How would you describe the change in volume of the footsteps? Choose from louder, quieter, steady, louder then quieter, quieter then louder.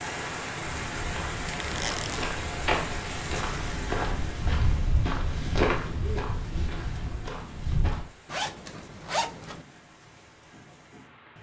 louder then quieter.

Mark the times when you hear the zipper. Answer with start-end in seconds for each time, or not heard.
1.6-2.2, 8.2-9.7.